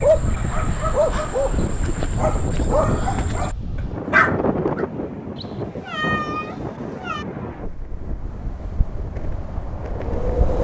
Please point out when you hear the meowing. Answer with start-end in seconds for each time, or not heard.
5.3-7.2.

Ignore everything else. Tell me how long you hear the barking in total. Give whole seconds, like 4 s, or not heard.
5 s.